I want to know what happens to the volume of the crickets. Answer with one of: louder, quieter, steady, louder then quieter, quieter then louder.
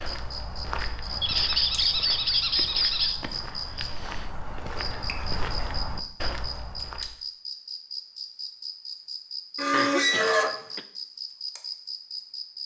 steady.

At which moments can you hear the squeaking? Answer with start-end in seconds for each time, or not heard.
1.2-3.1, 9.6-10.6.